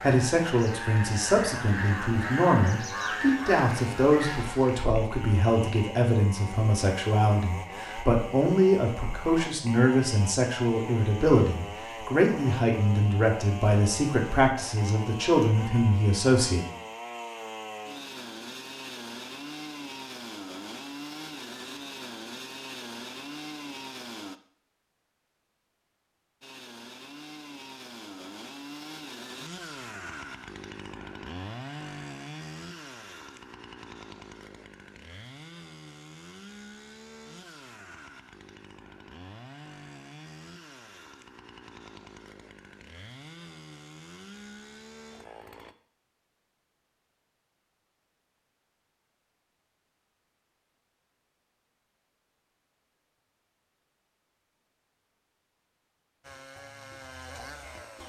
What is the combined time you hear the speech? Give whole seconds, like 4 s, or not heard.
17 s.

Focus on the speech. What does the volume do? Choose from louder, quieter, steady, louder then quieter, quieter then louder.
steady.